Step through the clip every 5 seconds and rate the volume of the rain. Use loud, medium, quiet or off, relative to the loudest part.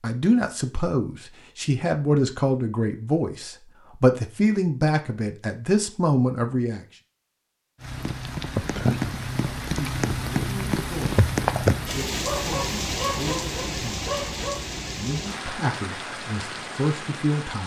off, loud, loud, medium.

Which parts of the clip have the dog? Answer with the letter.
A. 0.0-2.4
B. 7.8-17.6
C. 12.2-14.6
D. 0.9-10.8
C.